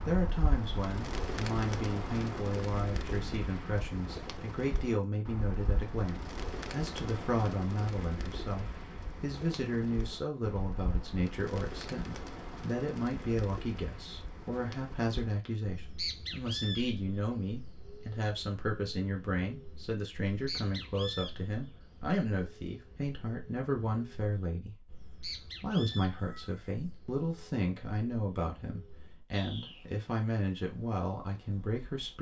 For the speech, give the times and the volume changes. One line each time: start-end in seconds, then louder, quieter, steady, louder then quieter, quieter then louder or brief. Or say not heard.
0.1-32.1 steady.